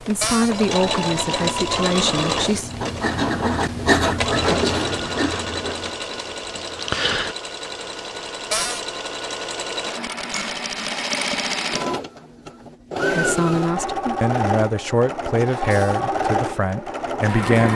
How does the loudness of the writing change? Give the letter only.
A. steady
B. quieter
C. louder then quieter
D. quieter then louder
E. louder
C.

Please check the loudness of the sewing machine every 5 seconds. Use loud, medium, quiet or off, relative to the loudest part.
loud, medium, loud, loud.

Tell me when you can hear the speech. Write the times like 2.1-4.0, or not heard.
0.0-2.7, 13.1-17.7.